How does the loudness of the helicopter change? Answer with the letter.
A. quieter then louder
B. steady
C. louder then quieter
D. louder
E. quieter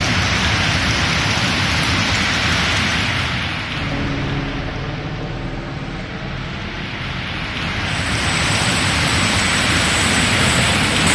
A.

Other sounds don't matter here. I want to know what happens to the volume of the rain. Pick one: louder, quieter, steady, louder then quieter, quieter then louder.
quieter then louder.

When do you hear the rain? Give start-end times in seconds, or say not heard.
0.0-11.1.